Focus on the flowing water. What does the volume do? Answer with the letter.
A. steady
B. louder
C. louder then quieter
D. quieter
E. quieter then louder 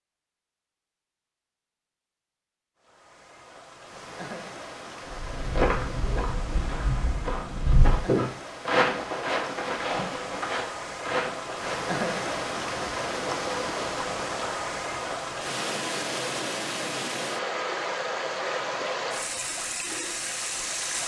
B.